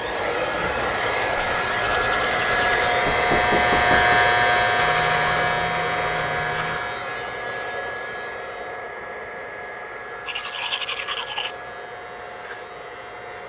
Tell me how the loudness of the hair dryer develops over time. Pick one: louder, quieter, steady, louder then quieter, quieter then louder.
quieter.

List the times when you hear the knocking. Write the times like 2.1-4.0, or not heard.
3.0-4.2.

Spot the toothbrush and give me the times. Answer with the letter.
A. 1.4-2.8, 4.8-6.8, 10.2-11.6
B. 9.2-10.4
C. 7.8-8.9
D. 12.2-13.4
A.